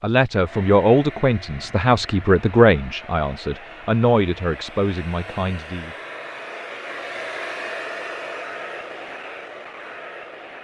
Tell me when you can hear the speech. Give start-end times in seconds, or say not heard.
0.0-6.0.